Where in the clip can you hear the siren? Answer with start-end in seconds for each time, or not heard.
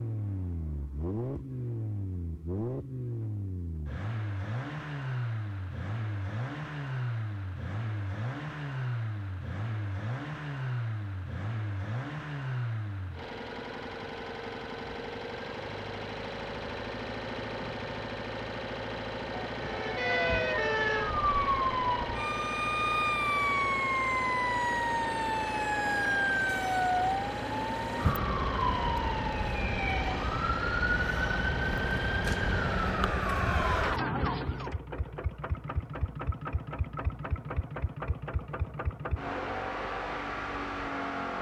19.6-34.8.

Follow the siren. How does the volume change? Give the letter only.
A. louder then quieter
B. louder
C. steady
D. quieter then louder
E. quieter
C.